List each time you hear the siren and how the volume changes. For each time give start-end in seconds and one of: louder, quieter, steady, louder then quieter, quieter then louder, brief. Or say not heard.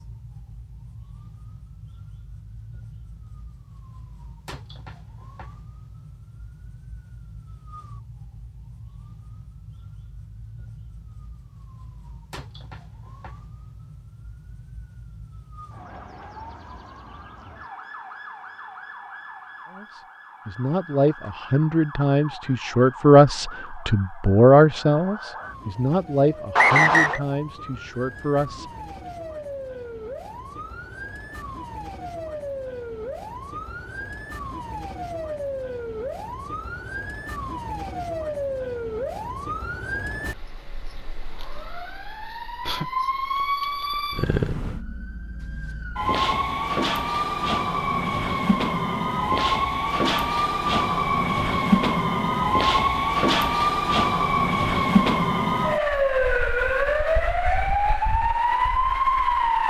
0.0-59.6 louder.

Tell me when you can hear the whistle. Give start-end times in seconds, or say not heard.
26.6-27.2.